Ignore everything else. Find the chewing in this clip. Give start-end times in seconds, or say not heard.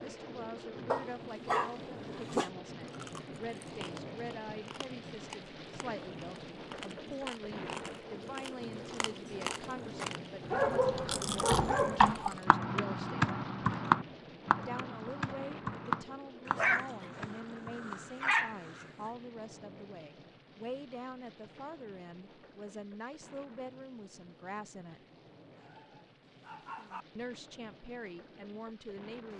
2.9-12.4.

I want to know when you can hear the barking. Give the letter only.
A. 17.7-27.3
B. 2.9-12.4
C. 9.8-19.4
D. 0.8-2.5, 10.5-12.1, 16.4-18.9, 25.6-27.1
D.